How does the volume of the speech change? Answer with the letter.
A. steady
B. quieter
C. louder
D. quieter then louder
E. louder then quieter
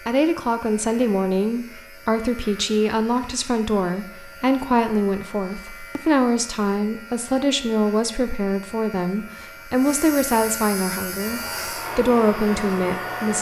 A.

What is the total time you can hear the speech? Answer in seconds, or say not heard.
13 s.